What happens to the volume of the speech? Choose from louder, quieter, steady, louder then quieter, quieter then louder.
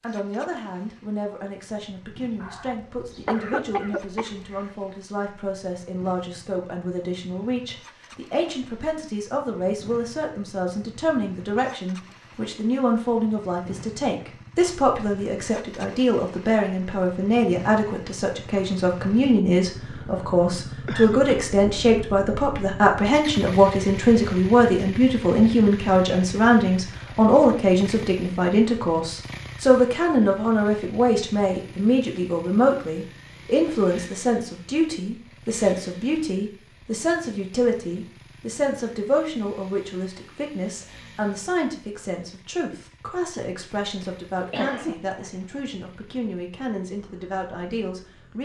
louder then quieter.